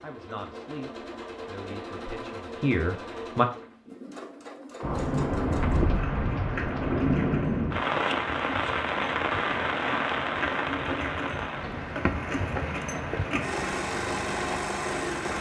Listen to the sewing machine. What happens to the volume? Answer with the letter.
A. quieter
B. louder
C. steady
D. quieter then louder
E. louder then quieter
B.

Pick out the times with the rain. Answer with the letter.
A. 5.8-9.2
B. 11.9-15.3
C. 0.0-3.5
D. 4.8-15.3
D.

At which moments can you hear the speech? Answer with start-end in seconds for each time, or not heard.
0.0-3.5.